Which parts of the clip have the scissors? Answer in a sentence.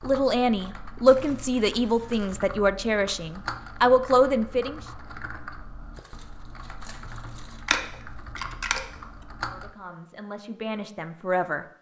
You can hear the scissors from 7.7 to 8.8 s.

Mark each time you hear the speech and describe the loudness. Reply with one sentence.
You can hear the speech from 0.0 to 4.8 s, getting quieter then louder; and briefly from 9.4 to 11.7 s.